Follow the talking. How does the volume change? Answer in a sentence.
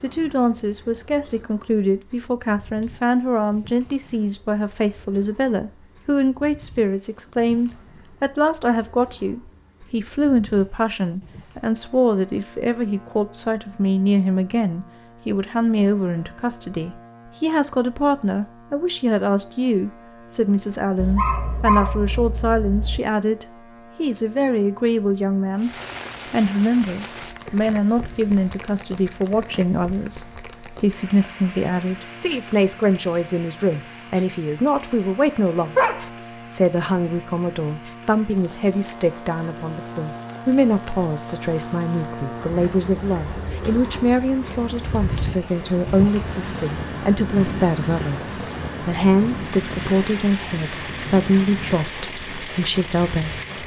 The loudness of the talking stays about the same.